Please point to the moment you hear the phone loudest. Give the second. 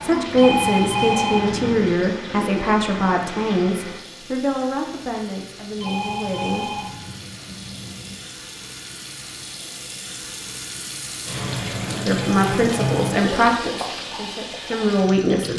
1 s.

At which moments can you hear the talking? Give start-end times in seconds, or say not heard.
0.0-6.7, 12.1-15.5.